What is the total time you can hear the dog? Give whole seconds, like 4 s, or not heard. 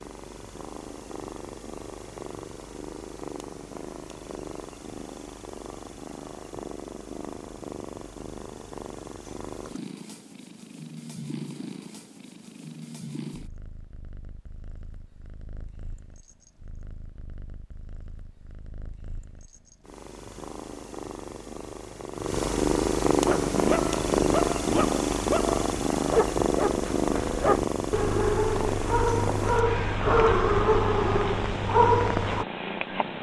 9 s.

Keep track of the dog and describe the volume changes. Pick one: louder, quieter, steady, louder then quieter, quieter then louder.
louder.